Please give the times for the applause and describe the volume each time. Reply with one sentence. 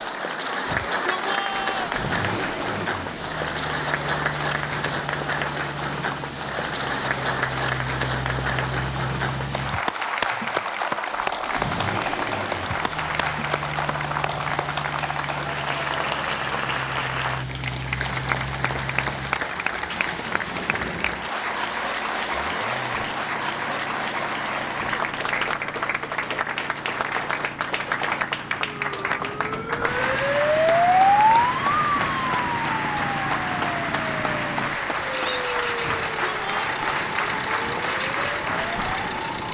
You can hear the applause from 0.0 to 39.5 s, at a steady volume.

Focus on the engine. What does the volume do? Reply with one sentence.
The loudness of the engine goes down, then up.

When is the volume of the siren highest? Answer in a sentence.
The loudest moment of the siren is at 31 seconds.